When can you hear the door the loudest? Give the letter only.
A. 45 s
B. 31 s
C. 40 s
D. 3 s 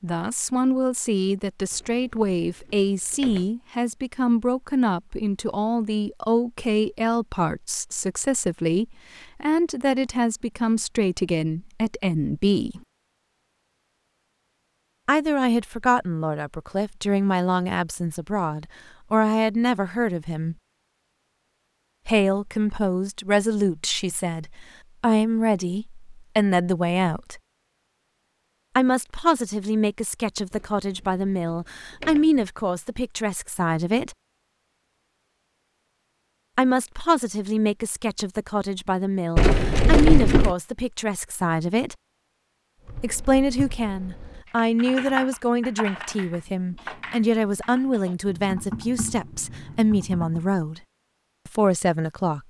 C.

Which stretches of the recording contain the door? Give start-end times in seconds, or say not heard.
1.7-3.5, 30.5-32.5, 39.4-40.5.